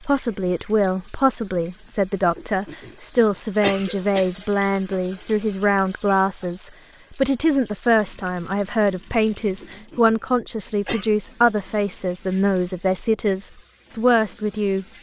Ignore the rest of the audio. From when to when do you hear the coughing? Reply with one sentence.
You can hear the coughing from 2.4 to 4.3 s and from 9.6 to 11.1 s.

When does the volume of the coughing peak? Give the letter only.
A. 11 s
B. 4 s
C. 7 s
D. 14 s
B.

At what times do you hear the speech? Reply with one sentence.
The speech can be heard from 0.1 to 14.9 s.